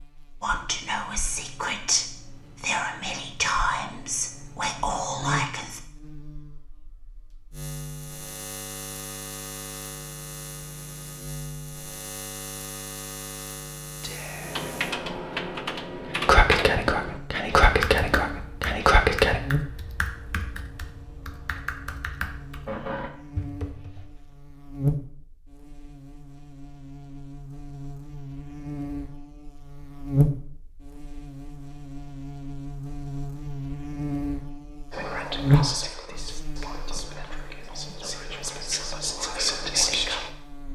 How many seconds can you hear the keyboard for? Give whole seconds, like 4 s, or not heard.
10 s.